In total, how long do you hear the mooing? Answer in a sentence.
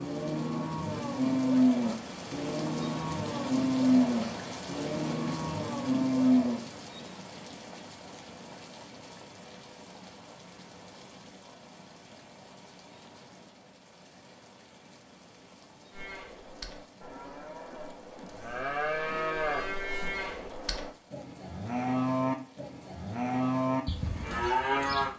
The mooing can be heard for 16 seconds in total.